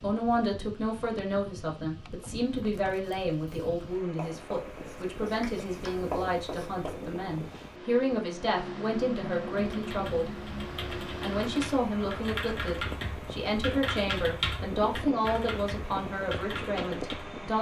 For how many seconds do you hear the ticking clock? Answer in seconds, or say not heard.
not heard.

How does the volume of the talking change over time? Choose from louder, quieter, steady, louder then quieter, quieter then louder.
steady.